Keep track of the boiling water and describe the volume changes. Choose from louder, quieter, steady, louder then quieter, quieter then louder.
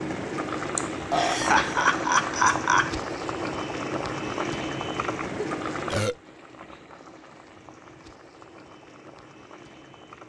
quieter.